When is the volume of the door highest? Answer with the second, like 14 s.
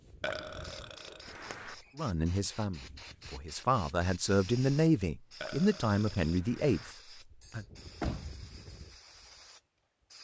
8 s.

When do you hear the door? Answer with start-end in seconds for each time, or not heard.
1.2-1.9, 7.4-8.5.